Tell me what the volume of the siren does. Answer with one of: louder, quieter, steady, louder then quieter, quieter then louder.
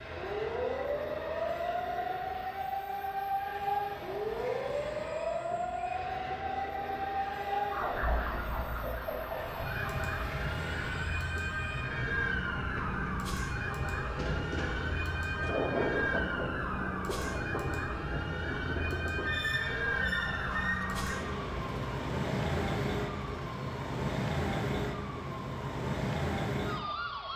steady.